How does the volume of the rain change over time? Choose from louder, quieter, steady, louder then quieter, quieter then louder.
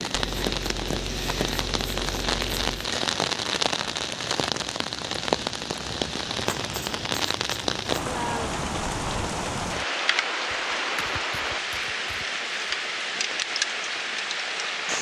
steady.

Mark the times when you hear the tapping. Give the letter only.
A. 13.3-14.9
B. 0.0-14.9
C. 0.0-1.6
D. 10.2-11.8
C.